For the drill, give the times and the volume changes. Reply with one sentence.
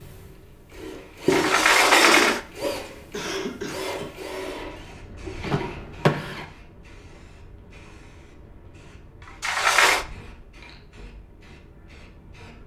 You can hear the drill from 0.0 to 6.5 s, getting quieter.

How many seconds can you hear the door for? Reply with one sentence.
You can hear the door for 3 seconds altogether.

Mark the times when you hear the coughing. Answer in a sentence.
The coughing can be heard from 3.1 to 3.8 s.